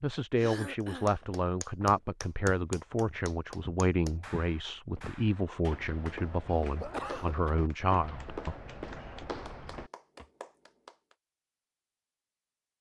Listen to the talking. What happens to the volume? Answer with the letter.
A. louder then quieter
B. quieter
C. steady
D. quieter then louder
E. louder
C.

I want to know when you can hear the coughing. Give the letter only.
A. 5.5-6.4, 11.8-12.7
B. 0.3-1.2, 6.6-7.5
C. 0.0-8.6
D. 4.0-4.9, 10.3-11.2
B.